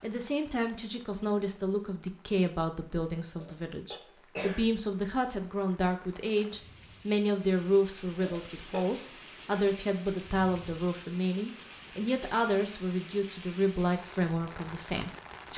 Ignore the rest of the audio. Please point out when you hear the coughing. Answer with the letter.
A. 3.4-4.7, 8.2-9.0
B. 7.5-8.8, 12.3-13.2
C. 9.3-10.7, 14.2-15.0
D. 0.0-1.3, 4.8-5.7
A.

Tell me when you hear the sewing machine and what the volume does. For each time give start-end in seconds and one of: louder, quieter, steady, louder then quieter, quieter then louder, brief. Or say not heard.
not heard.